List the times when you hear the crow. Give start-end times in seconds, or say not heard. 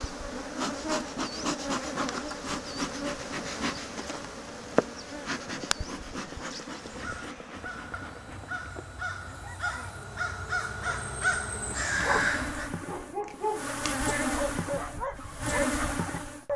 6.8-12.7.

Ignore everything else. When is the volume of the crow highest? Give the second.
12 s.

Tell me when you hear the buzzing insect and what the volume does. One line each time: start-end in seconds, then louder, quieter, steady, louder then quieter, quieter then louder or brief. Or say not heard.
0.0-16.5 quieter then louder.